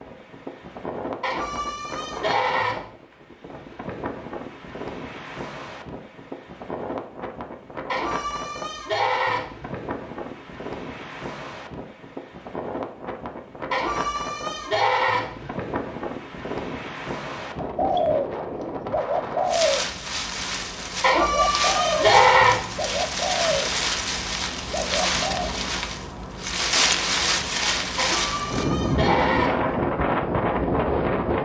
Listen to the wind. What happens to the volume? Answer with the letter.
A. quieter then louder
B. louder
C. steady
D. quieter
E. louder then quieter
B.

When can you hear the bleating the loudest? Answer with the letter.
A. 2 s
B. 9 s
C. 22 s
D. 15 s
C.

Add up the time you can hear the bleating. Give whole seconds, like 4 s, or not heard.
9 s.